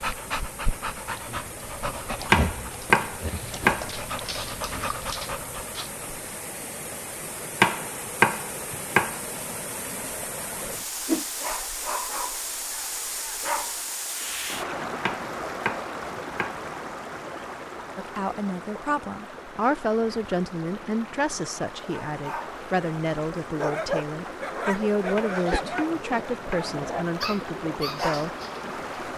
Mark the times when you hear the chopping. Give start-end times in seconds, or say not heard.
2.3-3.9, 7.6-9.2, 15.0-16.6, 25.1-26.8.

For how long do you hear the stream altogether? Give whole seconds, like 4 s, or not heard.
29 s.